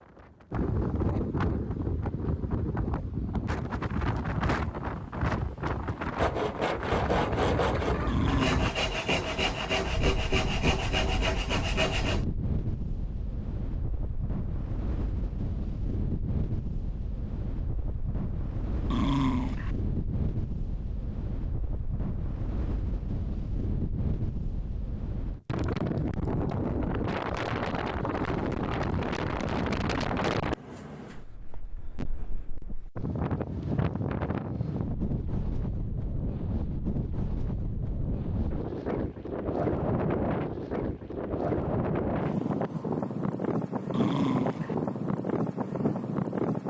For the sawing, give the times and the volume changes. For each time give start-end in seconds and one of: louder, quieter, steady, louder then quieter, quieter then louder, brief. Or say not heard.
6.2-12.2 steady.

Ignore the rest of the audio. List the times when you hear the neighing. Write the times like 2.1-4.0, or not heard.
not heard.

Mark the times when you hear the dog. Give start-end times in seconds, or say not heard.
8.1-8.7, 18.9-19.7, 43.9-44.8.